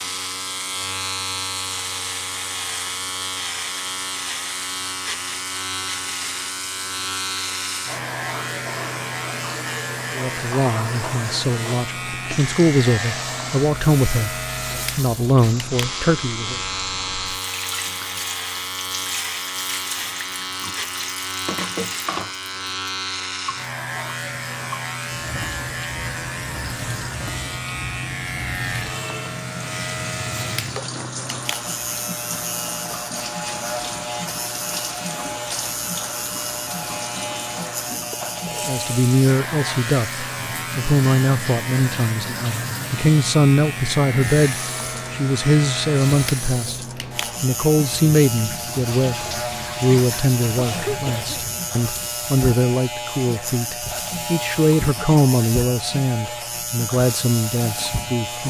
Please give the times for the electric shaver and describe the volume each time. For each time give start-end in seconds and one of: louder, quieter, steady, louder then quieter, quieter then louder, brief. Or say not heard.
0.0-58.4 steady.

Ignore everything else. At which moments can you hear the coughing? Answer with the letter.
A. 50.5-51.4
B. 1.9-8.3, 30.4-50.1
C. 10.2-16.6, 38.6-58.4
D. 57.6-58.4
A.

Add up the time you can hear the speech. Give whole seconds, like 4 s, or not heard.
26 s.